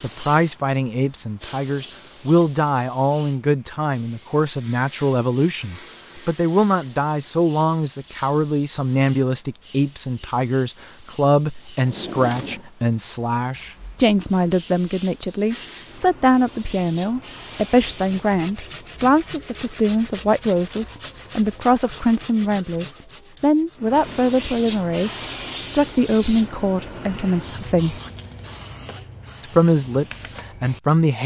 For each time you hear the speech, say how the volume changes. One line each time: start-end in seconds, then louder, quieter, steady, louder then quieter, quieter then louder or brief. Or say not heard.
0.0-27.9 steady
29.4-31.2 brief.